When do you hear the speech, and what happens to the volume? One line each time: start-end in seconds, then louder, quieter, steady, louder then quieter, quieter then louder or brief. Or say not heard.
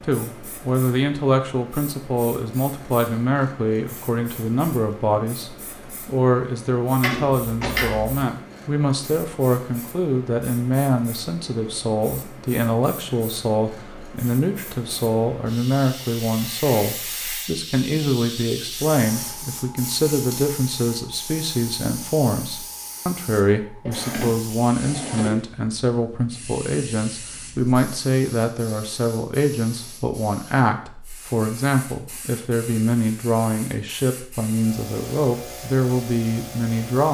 0.0-37.0 steady.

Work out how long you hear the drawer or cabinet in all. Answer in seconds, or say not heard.
3 s.